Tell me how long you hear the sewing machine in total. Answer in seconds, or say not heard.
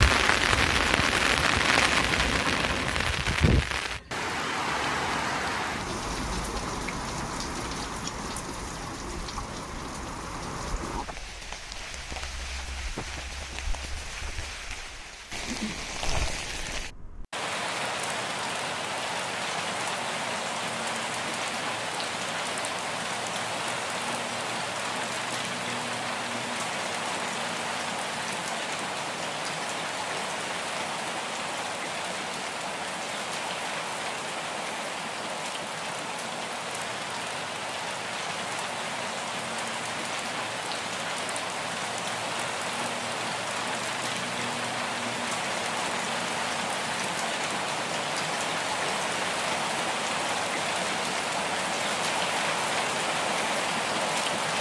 3 s.